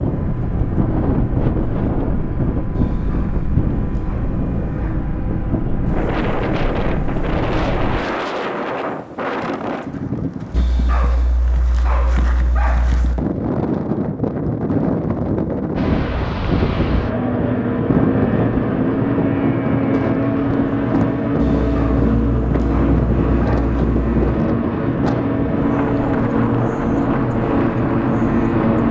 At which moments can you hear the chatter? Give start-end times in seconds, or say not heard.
not heard.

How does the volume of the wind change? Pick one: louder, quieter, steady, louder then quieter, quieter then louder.
steady.